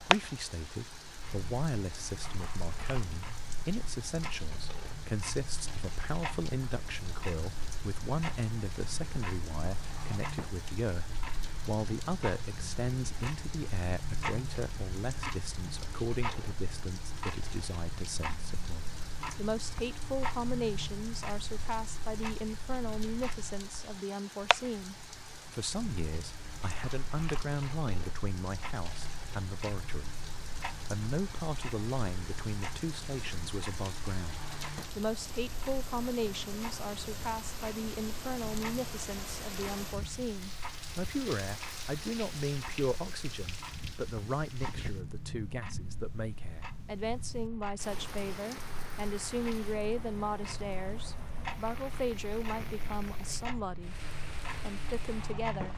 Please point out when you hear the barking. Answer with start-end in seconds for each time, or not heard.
not heard.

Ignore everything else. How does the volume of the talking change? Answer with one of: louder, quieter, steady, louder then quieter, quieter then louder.
steady.